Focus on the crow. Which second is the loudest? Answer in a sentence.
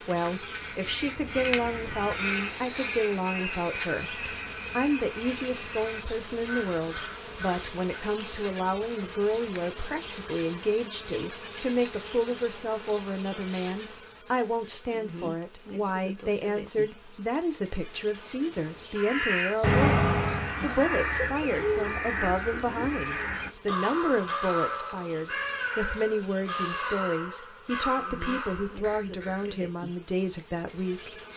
The loudest moment of the crow is at 20 seconds.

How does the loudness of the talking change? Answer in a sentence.
The loudness of the talking stays about the same.